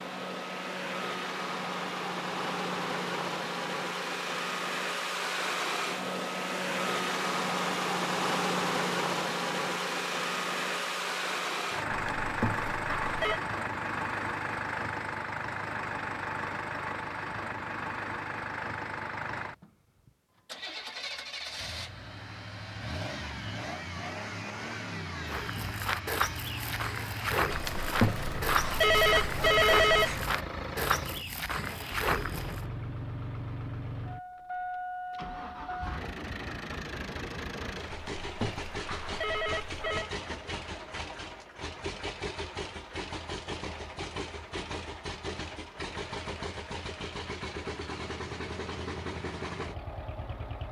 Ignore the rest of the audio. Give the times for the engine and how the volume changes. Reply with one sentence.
You can hear the engine from 0.0 to 50.6 s, getting quieter.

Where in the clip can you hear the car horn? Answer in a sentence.
The car horn can't be heard in this clip.